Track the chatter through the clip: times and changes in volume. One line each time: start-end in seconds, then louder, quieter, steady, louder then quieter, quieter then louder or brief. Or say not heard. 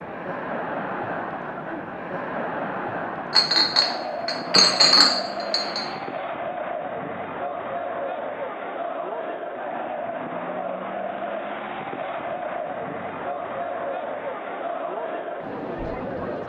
0.0-16.4 steady.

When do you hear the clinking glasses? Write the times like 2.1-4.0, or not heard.
3.3-5.9.